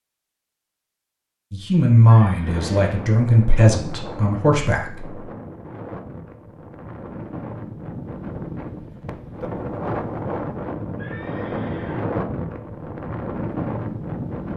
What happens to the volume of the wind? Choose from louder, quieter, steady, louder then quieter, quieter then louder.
louder.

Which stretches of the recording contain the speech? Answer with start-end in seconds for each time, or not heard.
1.5-5.2.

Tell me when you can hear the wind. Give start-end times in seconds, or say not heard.
2.4-14.5.